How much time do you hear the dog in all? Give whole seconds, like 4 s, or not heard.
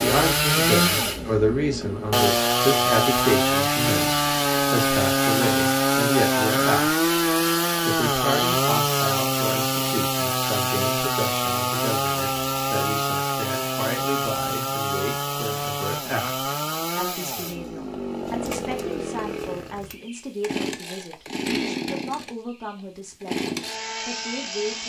not heard.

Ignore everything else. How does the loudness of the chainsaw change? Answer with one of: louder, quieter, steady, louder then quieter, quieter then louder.
quieter.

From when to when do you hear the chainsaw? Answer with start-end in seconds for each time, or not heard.
0.0-24.8.